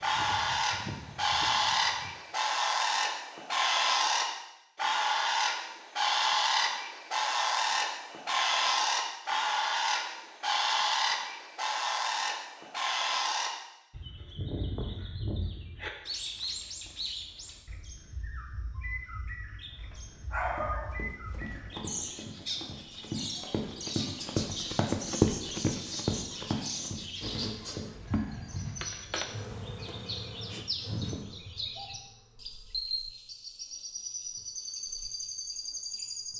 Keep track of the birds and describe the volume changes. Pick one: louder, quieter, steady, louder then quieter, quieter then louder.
quieter.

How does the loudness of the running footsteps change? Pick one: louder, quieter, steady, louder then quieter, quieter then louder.
louder then quieter.